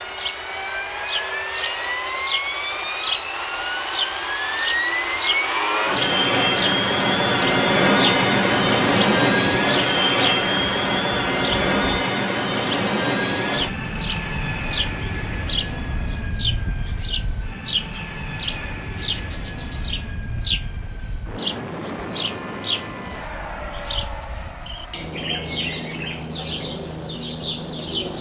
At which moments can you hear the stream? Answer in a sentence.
You can't hear the stream here.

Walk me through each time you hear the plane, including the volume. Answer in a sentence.
The plane can be heard from 0.0 to 28.1 s, getting louder then quieter.